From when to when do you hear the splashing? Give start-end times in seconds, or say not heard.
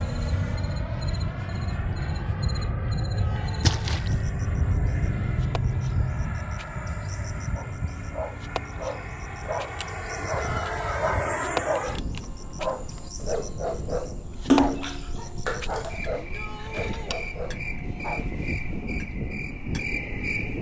3.6-4.1, 14.5-16.0.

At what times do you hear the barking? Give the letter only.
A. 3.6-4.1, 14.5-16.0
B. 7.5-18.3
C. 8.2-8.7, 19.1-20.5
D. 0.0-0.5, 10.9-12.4
B.